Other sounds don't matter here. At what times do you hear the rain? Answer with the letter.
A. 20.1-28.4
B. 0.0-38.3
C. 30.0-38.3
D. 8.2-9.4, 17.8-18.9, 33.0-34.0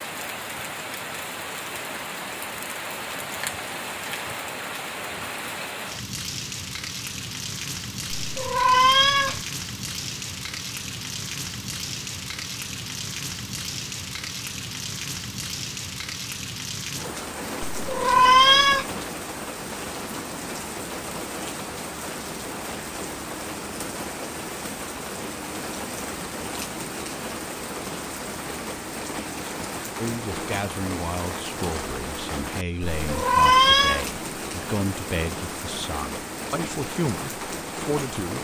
B.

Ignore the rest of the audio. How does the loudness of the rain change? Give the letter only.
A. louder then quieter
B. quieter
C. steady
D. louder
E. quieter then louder
C.